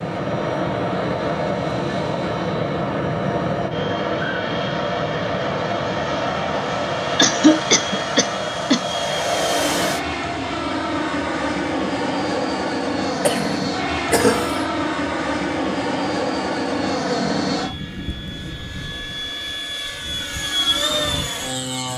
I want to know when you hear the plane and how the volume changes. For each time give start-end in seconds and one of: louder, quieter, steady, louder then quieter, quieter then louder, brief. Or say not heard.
0.0-21.9 steady.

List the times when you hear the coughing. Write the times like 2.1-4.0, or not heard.
7.2-8.8, 13.2-14.7.